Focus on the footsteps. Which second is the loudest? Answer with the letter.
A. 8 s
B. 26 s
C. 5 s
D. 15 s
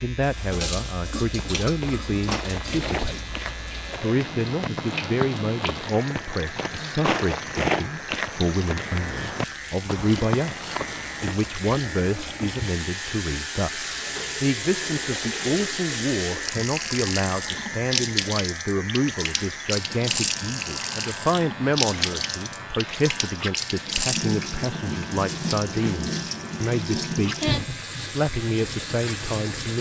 A.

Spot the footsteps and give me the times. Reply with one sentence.
You can hear the footsteps from 1.4 to 11.6 s.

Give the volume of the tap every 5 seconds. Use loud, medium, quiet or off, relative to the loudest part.
medium, medium, medium, loud, loud, loud.